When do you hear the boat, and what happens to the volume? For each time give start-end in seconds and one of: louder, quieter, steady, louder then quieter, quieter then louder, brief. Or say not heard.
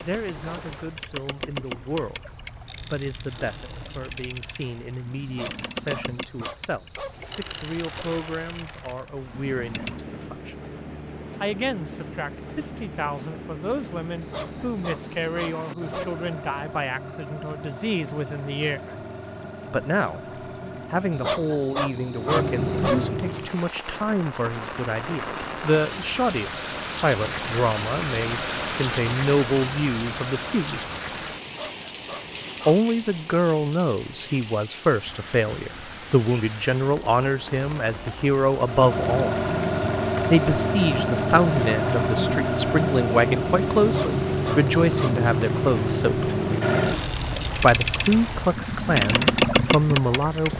0.0-23.6 louder
38.5-50.5 steady.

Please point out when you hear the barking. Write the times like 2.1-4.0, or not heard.
5.2-7.2, 14.2-16.1, 21.1-23.1, 31.4-32.8, 43.8-45.2.